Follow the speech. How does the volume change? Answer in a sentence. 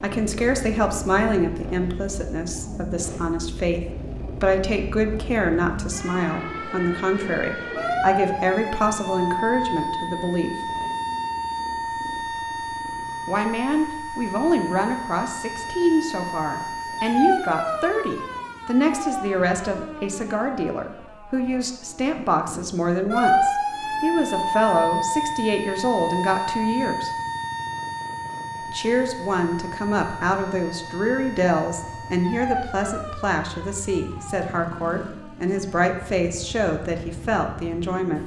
The volume of the speech stays about the same.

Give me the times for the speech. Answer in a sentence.
You can hear the speech from 0.0 to 10.6 s, from 13.2 to 27.1 s and from 28.7 to 38.2 s.